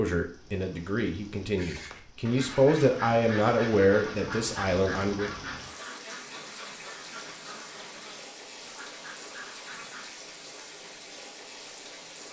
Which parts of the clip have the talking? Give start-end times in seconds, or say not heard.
0.0-5.3.